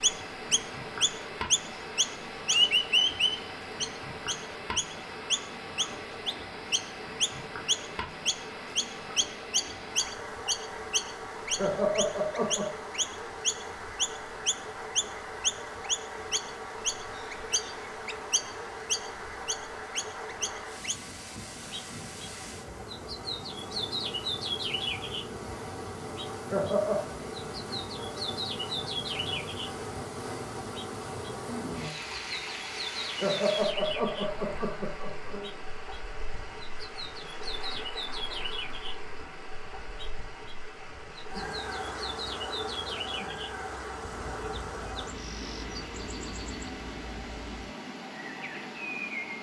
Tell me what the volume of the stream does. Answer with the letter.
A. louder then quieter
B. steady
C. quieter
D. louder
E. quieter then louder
B.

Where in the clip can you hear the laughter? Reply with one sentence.
The laughter can be heard from 11.6 to 12.7 s, from 26.5 to 27.0 s and from 33.2 to 35.5 s.